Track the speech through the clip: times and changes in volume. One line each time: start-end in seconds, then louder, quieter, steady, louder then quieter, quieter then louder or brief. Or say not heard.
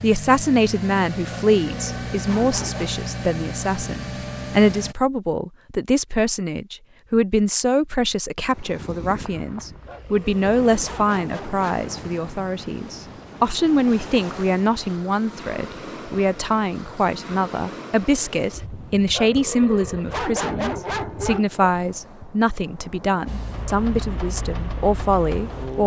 0.0-25.8 steady.